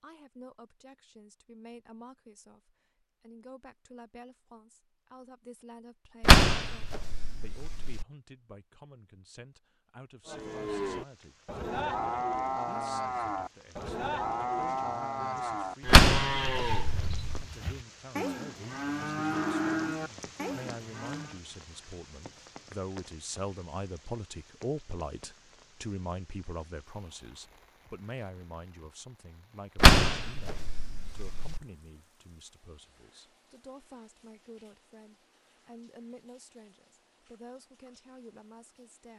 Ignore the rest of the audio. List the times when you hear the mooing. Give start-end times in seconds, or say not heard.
10.2-21.4.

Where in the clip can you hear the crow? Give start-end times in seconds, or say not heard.
not heard.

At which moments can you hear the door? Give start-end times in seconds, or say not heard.
6.2-8.1, 15.8-17.4, 29.8-31.6.